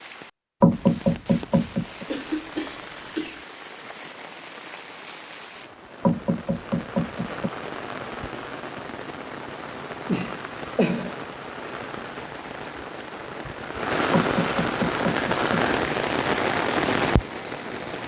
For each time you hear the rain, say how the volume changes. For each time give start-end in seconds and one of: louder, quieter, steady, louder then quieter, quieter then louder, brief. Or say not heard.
0.0-18.0 louder.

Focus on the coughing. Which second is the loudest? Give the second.
11 s.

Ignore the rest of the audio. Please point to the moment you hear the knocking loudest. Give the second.
1 s.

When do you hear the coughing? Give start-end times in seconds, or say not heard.
2.0-3.5, 10.1-11.2.